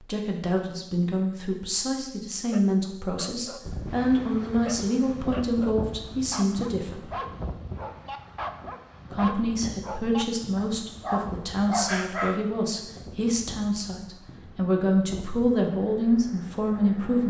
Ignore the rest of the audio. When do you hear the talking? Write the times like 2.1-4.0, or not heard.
0.0-7.1, 9.1-17.2.